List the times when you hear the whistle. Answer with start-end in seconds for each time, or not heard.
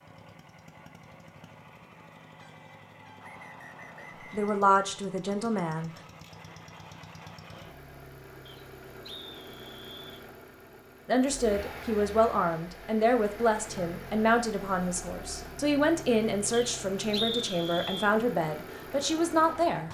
3.2-4.5, 8.4-10.2, 16.5-18.1.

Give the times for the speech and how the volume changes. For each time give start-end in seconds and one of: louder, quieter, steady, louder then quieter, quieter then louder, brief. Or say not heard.
4.2-5.9 brief
11.1-19.8 steady.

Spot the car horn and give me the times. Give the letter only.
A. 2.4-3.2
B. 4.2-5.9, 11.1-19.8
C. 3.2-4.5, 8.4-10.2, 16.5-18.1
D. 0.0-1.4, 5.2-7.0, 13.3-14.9
A.